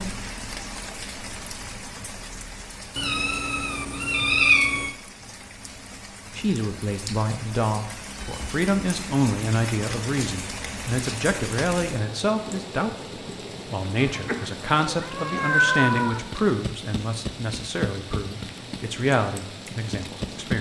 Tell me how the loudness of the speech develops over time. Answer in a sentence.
The loudness of the speech stays about the same.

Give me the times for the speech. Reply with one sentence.
You can hear the speech from 6.3 to 13.1 s and from 13.7 to 20.5 s.